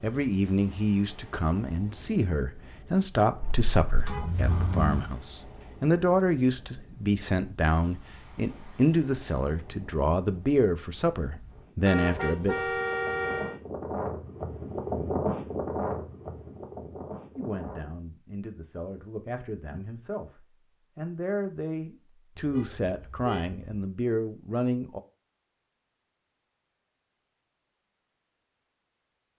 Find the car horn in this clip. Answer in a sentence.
The car horn can be heard from 3.4 to 5.0 s, from 11.8 to 13.6 s and from 22.4 to 23.8 s.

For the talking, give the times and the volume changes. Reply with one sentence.
You can hear the talking from 0.0 to 12.6 s, at a steady volume; and from 17.4 to 25.0 s, getting louder.